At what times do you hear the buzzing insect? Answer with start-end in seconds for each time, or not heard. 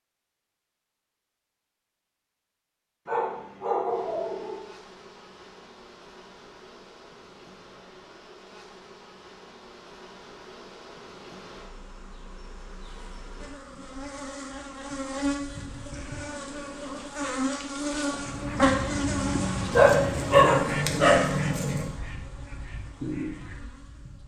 3.9-24.2.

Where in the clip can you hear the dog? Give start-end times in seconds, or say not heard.
3.0-4.6, 19.7-21.9.